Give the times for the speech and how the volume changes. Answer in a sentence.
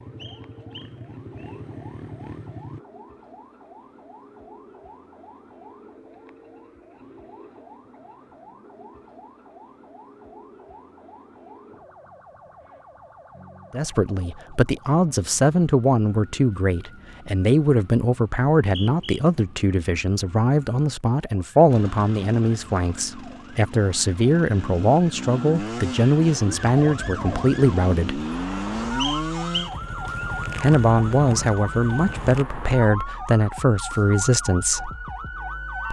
You can hear the speech from 13.7 to 28.2 s, at a steady volume; and from 30.6 to 34.9 s, at a steady volume.